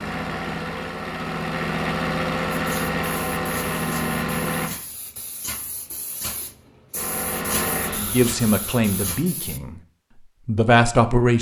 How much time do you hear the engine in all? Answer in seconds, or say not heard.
7 s.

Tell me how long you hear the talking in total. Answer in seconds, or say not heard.
3 s.